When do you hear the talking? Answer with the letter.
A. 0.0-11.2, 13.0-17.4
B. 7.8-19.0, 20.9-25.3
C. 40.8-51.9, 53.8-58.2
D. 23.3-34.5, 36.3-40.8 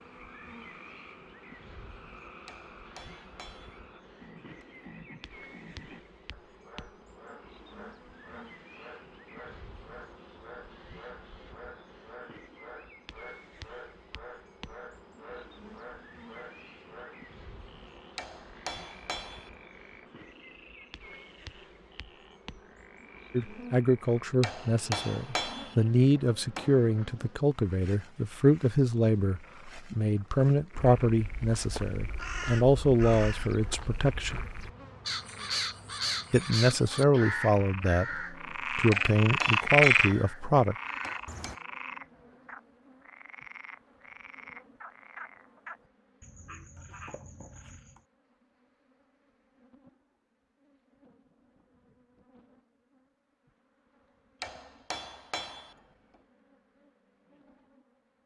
D.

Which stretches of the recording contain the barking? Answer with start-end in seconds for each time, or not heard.
not heard.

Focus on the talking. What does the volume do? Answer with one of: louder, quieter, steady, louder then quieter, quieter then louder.
steady.